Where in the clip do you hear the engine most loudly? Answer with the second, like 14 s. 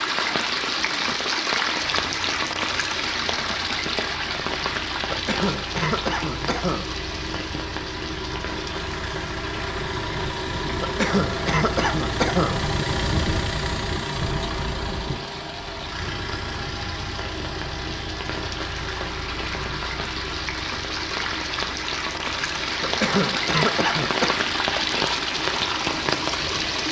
13 s.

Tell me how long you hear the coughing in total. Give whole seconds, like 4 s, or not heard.
5 s.